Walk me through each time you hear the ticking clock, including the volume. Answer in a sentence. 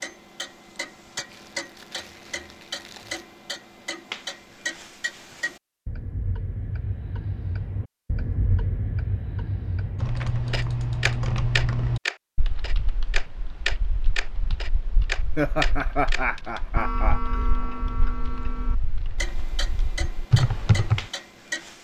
The ticking clock can be heard from 0.0 to 21.8 s, getting louder then quieter.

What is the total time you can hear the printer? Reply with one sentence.
The printer can't be heard in this clip.